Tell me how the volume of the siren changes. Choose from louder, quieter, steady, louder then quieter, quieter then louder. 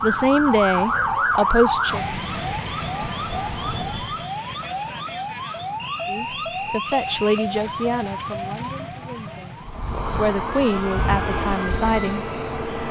quieter.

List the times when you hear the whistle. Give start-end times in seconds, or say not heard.
5.8-7.3.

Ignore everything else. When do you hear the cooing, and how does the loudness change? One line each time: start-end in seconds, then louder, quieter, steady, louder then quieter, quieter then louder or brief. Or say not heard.
not heard.